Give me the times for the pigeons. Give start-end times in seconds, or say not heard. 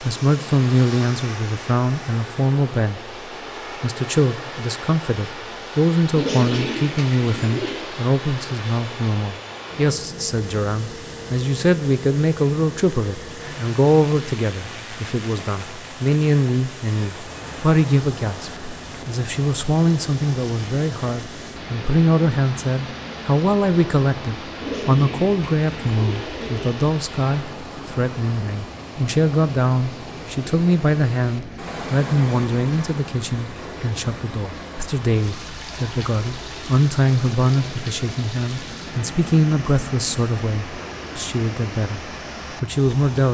6.2-7.9, 24.6-26.9.